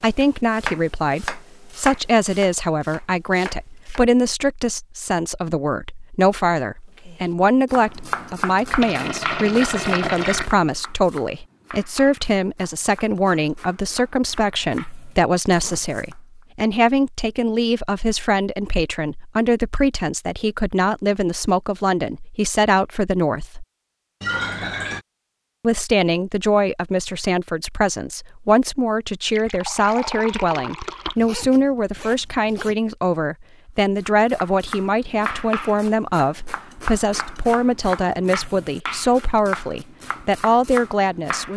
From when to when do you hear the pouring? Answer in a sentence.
The pouring can be heard from 8.8 to 10.5 s, from 24.2 to 25.1 s and from 29.3 to 31.1 s.